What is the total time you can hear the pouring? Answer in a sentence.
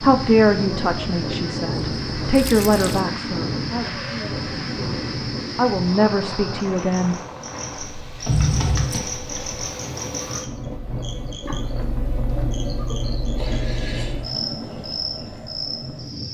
The pouring can be heard for 2 seconds in total.